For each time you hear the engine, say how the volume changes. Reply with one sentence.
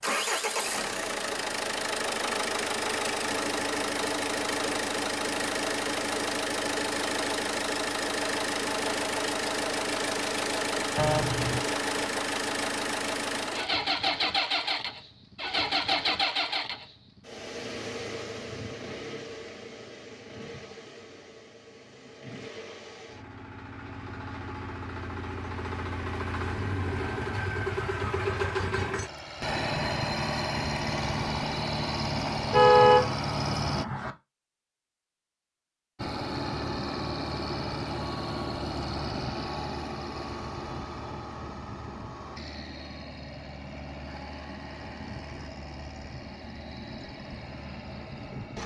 The engine can be heard from 0.0 to 33.9 s, getting quieter then louder; and from 36.0 to 48.6 s, getting quieter.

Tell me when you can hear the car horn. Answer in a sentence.
The car horn can be heard from 10.9 to 11.7 s and from 32.5 to 34.1 s.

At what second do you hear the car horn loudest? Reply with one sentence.
The loudest moment of the car horn is at 33 seconds.